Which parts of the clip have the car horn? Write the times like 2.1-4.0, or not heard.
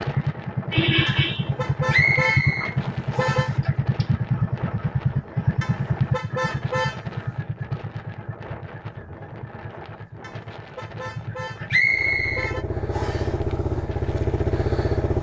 1.1-3.5, 5.6-7.3, 10.2-12.7.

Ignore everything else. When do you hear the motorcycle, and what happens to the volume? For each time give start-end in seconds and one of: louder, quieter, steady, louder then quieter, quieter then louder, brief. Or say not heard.
0.0-15.1 quieter then louder.